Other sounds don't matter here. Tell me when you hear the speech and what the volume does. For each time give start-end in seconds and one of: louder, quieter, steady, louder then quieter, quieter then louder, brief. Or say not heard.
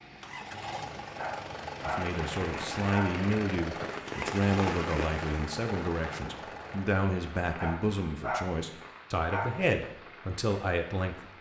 1.9-11.3 steady.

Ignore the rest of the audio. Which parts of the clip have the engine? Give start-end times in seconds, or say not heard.
0.0-7.0.